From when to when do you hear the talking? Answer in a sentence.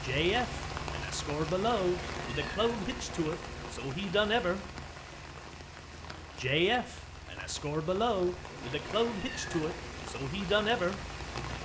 The talking can be heard from 0.0 to 4.6 s and from 6.3 to 11.0 s.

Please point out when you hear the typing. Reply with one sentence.
The typing can't be heard in this clip.